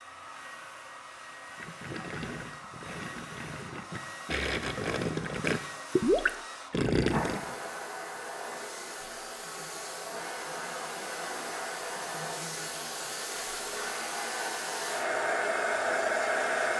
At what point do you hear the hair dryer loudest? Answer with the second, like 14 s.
16 s.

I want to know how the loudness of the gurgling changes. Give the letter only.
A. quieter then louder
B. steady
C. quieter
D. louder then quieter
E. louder
E.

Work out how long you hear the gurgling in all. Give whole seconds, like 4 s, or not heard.
6 s.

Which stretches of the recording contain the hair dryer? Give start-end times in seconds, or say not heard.
0.0-16.7.